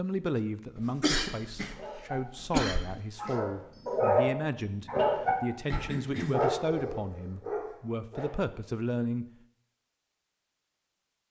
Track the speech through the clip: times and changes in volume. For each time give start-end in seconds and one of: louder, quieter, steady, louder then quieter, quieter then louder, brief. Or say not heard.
0.0-9.2 steady.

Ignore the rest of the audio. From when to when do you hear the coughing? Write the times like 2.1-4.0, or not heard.
0.8-3.0, 5.7-6.4.